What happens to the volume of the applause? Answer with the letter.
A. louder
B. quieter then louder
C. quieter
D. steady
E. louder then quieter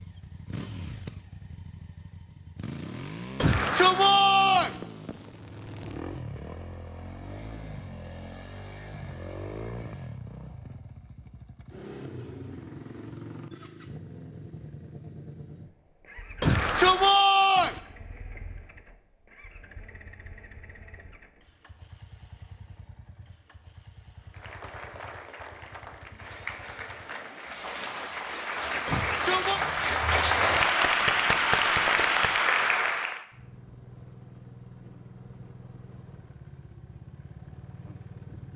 A.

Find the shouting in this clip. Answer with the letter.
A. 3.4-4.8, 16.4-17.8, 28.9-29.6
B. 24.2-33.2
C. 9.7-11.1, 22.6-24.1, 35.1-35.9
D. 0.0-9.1
A.